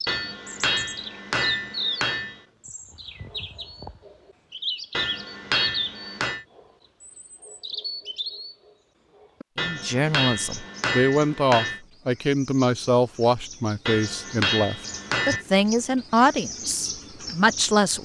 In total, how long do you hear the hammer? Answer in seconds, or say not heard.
8 s.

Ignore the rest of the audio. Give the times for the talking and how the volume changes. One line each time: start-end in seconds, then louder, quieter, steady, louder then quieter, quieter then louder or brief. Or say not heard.
9.6-18.0 steady.